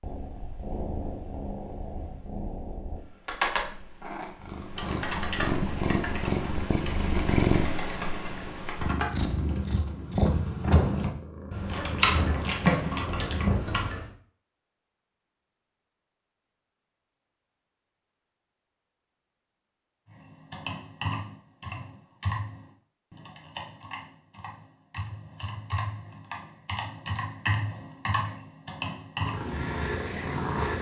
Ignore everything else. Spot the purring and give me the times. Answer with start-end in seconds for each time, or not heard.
0.0-13.8, 29.2-30.7.